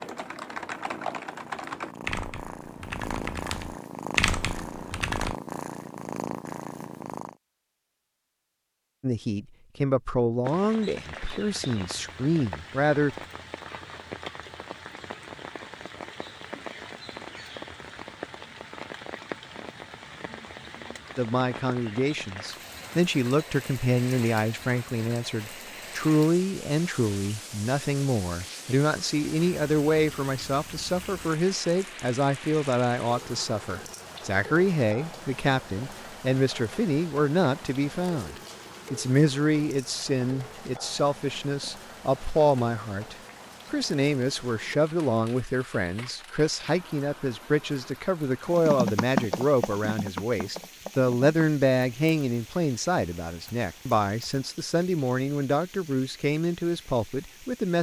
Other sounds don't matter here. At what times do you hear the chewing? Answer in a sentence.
You can't hear the chewing here.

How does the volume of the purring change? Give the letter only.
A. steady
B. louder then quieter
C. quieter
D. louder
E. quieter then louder
D.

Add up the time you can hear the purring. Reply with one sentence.
The purring can be heard for 7 seconds in total.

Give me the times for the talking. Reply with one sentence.
The talking can be heard from 9.0 to 13.2 s and from 21.1 to 57.7 s.